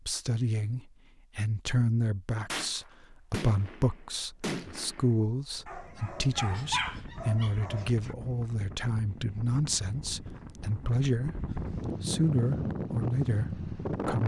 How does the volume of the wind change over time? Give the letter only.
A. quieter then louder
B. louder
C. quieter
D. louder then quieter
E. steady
B.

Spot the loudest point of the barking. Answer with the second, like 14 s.
7 s.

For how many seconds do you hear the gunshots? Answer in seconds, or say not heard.
3 s.